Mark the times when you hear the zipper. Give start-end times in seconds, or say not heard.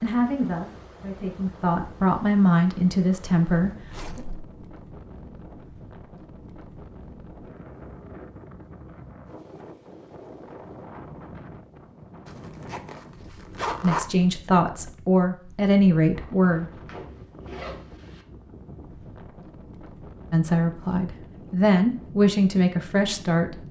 3.9-4.5, 12.2-14.1, 16.9-18.2.